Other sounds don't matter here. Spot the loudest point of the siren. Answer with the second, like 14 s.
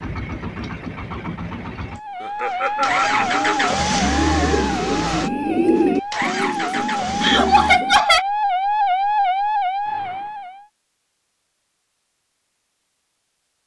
9 s.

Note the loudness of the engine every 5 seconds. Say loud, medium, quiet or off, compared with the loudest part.
loud, loud, off.